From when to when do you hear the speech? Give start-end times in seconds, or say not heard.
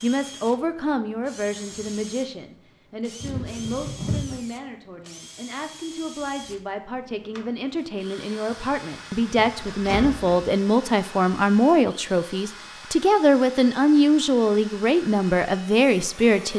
0.0-16.5.